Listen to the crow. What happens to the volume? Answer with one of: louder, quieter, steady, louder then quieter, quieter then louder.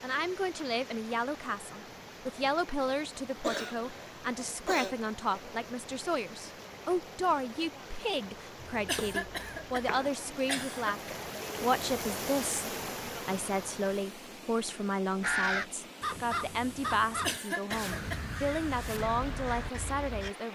quieter.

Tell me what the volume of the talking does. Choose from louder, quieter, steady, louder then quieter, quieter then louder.
steady.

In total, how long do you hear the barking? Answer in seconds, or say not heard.
not heard.